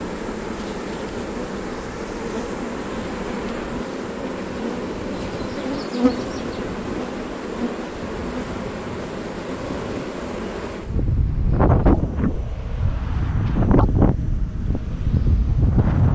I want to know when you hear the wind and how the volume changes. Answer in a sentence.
The wind can be heard from 0.0 to 16.1 s, getting louder.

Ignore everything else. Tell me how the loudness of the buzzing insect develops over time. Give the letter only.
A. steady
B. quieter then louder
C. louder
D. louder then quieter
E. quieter
E.